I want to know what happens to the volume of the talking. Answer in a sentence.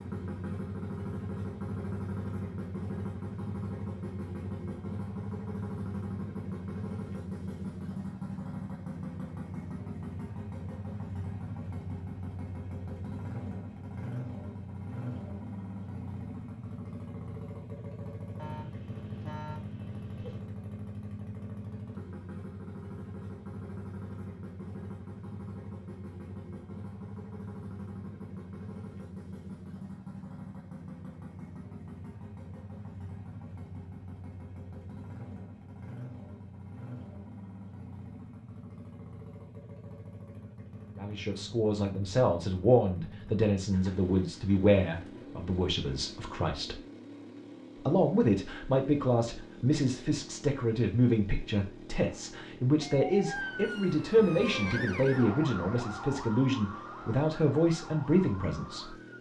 The loudness of the talking stays about the same.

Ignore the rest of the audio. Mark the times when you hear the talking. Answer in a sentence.
You can hear the talking from 41.0 to 46.8 s and from 47.9 to 59.0 s.